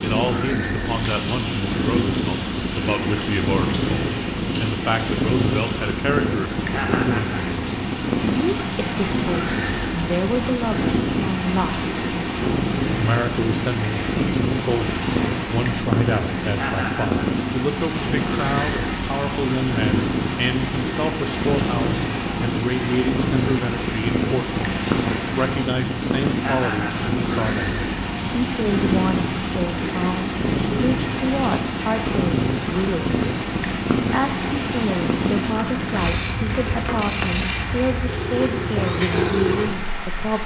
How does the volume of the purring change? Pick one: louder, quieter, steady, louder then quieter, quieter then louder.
steady.